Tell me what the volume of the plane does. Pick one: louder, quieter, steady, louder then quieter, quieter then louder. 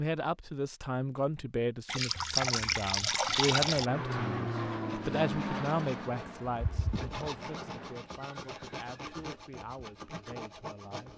quieter.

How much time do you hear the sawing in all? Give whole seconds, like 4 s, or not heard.
6 s.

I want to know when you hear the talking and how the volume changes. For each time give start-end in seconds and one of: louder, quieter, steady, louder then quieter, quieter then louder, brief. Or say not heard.
0.0-11.1 quieter.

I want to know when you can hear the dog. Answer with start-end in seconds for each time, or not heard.
not heard.